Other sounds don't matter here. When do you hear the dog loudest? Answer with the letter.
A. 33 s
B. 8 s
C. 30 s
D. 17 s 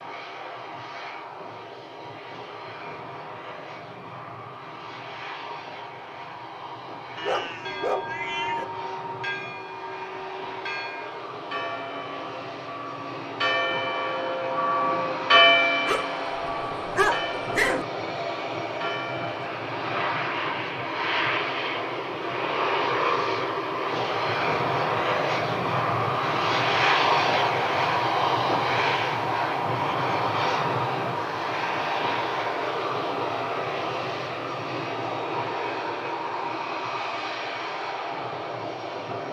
D.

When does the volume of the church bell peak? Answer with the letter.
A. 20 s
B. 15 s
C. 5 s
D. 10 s
B.